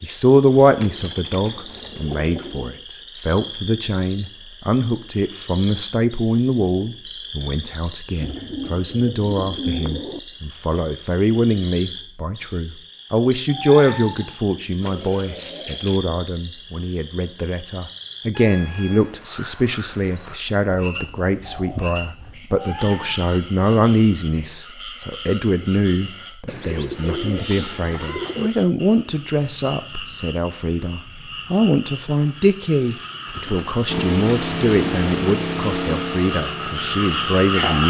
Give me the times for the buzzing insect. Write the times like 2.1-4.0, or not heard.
not heard.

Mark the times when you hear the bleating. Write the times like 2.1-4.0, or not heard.
not heard.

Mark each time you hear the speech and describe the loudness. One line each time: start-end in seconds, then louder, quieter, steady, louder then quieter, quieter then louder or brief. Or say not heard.
0.0-37.8 steady.